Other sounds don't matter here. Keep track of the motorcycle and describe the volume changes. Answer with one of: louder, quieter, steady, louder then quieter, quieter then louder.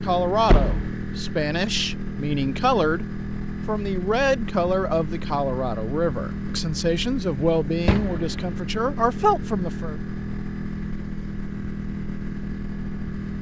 steady.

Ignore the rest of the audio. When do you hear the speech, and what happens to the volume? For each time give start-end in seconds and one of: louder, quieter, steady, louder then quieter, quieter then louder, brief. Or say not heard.
0.0-9.9 steady.